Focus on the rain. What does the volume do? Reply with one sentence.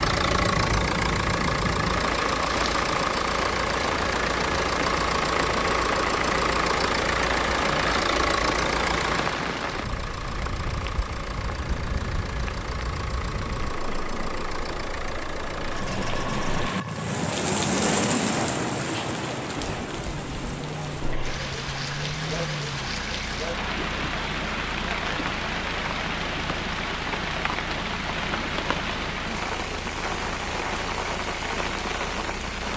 The loudness of the rain stays about the same.